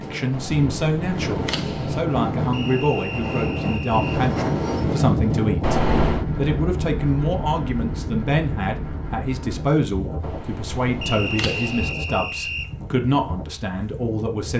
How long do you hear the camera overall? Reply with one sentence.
You can hear the camera for 4 seconds altogether.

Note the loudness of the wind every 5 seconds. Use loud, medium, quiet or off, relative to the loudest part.
loud, loud, medium.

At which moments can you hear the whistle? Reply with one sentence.
The whistle can be heard from 2.5 to 4.2 s and from 11.0 to 12.7 s.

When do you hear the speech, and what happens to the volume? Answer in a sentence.
The speech can be heard from 0.0 to 14.5 s, at a steady volume.